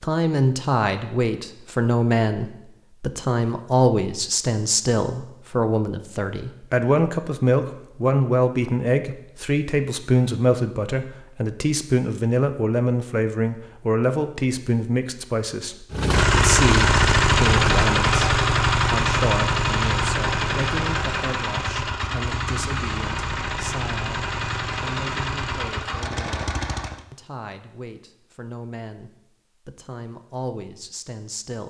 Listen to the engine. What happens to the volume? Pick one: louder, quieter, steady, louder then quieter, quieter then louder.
quieter.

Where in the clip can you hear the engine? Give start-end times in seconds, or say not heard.
15.9-27.1.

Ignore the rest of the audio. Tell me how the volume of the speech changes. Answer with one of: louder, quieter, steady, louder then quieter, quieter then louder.
quieter.